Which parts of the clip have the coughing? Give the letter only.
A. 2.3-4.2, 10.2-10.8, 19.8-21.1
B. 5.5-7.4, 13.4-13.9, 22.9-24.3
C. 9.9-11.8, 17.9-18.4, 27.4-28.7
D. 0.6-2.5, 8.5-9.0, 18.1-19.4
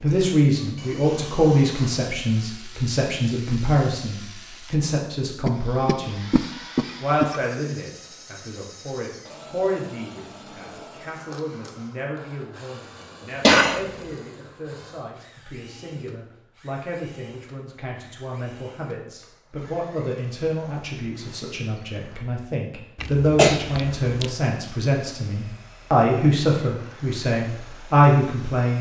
B.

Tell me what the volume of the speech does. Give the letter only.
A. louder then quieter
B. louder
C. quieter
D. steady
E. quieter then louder
E.